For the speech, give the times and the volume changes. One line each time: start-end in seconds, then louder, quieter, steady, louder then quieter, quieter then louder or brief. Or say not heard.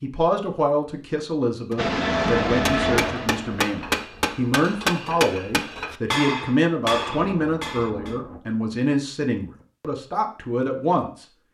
0.0-11.2 steady.